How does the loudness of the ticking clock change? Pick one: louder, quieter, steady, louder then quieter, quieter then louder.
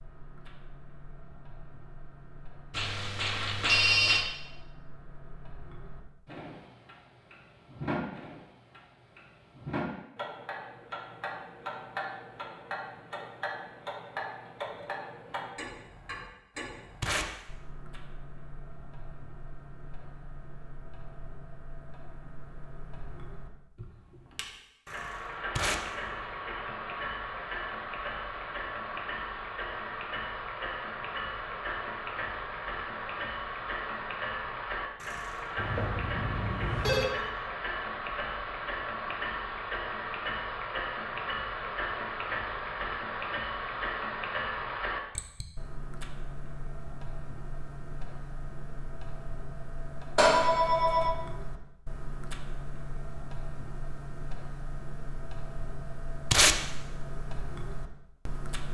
louder then quieter.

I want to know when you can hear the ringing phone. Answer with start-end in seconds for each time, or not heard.
2.7-4.2, 35.5-37.1, 50.1-51.1.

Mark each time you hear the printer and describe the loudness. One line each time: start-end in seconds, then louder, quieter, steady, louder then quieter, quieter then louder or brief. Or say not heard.
not heard.